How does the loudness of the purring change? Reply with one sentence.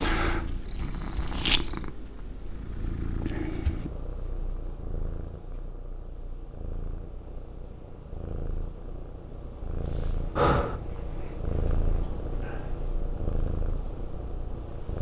The volume of the purring goes down, then up.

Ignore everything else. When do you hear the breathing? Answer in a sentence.
The breathing can be heard from 10.3 to 10.8 s.